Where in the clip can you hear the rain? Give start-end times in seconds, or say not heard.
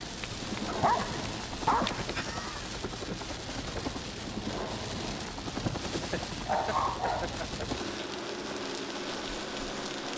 0.0-10.1.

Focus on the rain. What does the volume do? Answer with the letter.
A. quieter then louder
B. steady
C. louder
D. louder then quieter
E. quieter
B.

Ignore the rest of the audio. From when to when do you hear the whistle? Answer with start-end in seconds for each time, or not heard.
not heard.